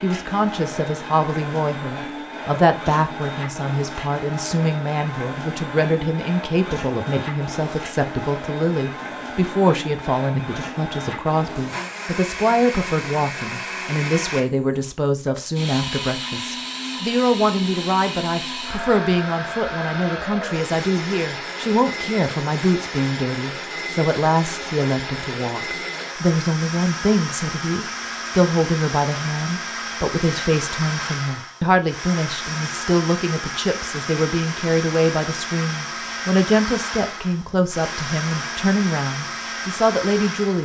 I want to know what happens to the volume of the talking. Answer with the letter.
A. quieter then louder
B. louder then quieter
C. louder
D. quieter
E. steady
E.